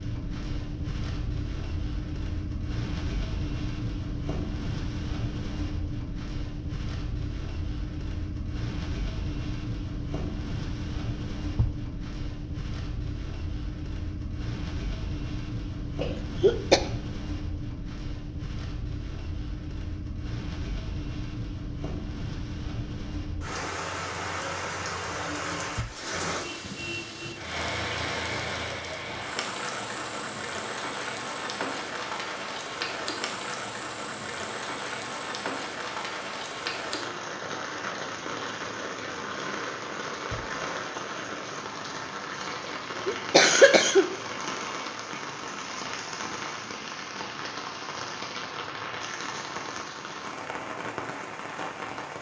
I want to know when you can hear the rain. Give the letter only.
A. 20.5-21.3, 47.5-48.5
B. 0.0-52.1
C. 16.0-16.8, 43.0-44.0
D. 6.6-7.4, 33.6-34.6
B.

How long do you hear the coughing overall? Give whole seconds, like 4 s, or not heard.
2 s.